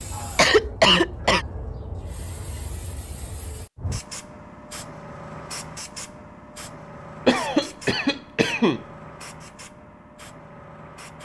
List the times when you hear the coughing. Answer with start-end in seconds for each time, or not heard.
0.1-1.4, 7.2-8.8.